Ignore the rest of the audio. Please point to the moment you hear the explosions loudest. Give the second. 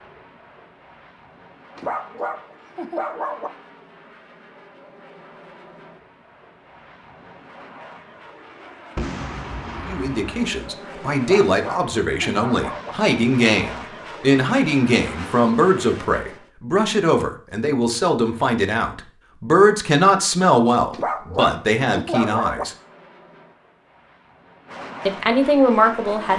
9 s.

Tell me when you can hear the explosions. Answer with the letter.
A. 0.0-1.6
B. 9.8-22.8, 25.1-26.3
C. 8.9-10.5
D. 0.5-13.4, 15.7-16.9
C.